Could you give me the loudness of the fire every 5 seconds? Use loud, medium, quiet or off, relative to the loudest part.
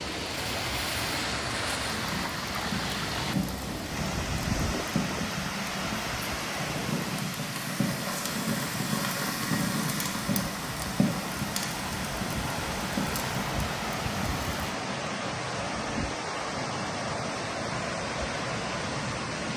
loud, loud, loud, off.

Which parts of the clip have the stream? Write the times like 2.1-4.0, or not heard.
0.0-19.5.